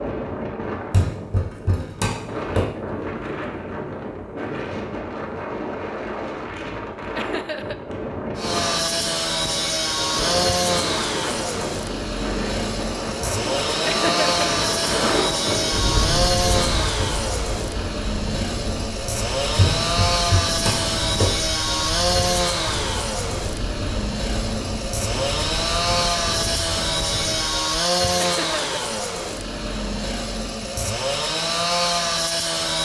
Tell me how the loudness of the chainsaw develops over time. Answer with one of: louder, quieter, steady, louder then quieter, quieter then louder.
steady.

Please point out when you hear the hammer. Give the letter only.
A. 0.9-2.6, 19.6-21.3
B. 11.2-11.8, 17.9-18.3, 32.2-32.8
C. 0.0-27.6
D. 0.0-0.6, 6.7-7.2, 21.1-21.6
A.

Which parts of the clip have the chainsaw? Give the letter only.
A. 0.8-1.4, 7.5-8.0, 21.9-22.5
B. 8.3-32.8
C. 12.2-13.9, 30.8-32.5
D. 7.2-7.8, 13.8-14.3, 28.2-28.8
B.